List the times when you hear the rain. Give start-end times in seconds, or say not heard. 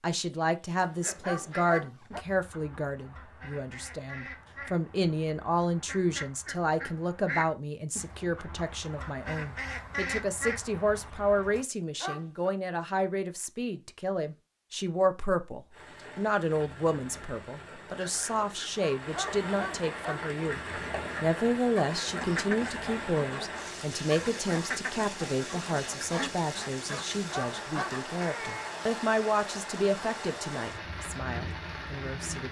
15.7-32.4.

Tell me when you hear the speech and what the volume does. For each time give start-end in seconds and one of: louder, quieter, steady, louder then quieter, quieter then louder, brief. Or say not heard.
0.0-32.4 steady.